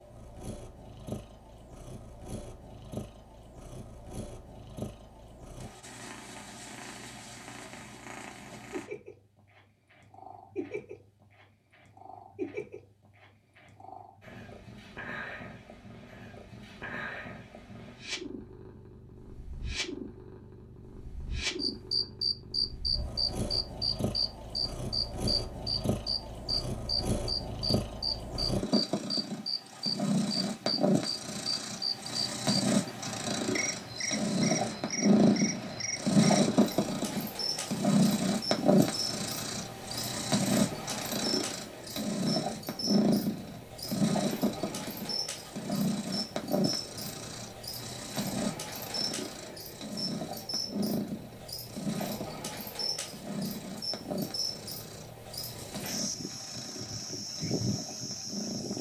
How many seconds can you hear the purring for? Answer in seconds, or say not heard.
59 s.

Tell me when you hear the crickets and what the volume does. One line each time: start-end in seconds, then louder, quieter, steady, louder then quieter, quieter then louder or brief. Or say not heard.
21.6-58.7 quieter.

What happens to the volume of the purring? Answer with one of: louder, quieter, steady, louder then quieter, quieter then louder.
louder then quieter.